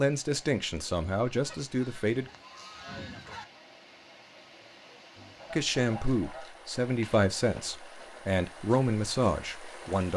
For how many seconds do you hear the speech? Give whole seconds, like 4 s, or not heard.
7 s.